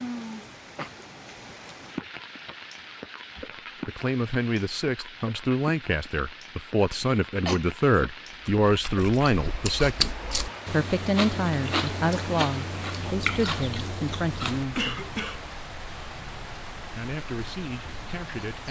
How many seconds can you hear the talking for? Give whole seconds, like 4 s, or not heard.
13 s.